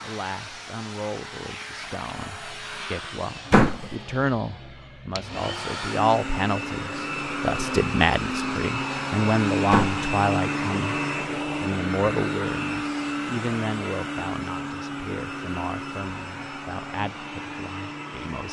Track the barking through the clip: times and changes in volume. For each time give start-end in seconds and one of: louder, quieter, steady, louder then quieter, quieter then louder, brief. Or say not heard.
not heard.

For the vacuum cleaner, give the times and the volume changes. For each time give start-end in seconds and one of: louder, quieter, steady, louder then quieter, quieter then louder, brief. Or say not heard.
0.0-18.4 louder then quieter.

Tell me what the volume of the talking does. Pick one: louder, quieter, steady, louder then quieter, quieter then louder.
louder then quieter.